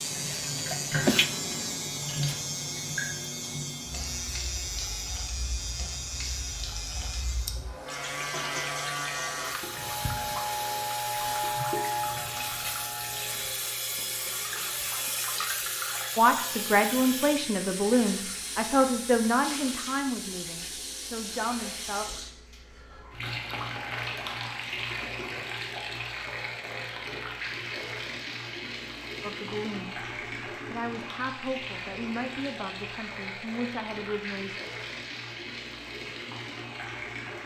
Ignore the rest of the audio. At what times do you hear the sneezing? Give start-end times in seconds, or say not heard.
0.2-1.4.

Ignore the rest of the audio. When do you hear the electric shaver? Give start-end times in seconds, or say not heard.
0.0-13.5.